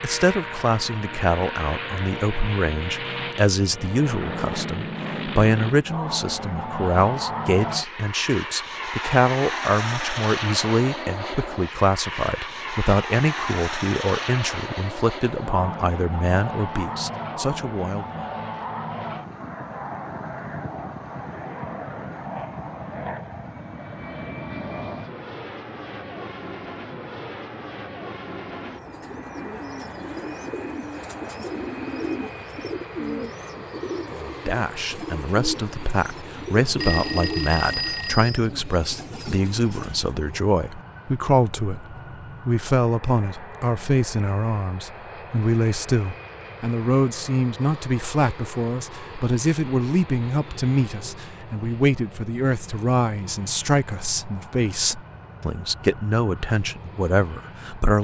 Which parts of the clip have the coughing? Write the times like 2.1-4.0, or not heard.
not heard.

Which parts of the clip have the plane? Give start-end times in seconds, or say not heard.
0.0-57.9.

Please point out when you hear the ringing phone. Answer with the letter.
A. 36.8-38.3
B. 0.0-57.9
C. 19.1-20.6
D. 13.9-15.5
A.